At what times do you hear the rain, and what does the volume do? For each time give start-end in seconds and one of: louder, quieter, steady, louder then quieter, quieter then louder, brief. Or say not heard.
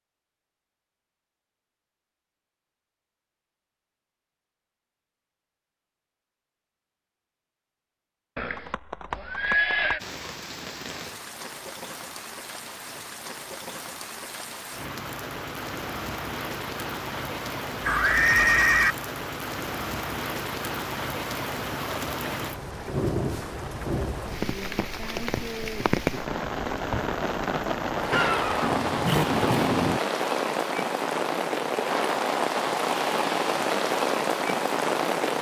9.9-35.3 louder.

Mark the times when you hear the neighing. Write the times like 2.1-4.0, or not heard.
8.3-10.0, 17.8-18.9, 28.1-30.0.